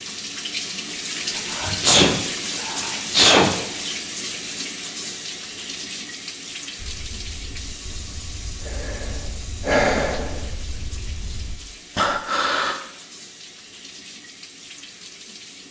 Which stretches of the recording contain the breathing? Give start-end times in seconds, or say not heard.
6.8-12.8.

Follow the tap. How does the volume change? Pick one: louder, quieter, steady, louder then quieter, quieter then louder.
quieter.